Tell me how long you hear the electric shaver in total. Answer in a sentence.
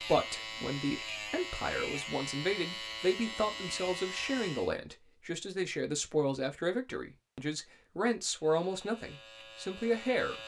The electric shaver can be heard for 7 seconds in total.